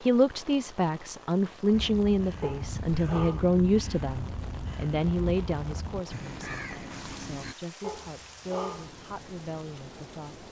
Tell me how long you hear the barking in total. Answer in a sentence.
You can hear the barking for 2 seconds altogether.